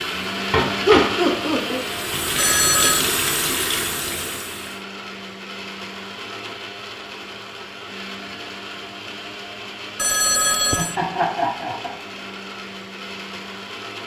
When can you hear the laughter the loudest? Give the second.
1 s.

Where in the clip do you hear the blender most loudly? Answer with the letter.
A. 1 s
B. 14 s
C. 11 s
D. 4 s
A.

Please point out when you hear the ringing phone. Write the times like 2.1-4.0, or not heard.
2.4-3.0, 9.9-10.9.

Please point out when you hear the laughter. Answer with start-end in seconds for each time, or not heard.
0.8-1.8, 10.8-11.9.